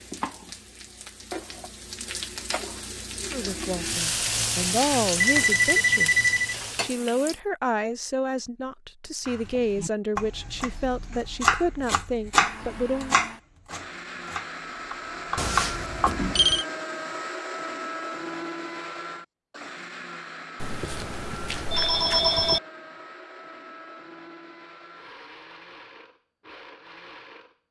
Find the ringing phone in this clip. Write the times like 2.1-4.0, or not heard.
5.2-6.5, 15.3-16.6, 20.6-22.6.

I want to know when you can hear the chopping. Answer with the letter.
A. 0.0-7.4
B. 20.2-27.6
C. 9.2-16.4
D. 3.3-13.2
C.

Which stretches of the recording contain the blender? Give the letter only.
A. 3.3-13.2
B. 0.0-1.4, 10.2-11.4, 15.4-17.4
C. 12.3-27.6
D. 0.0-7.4
C.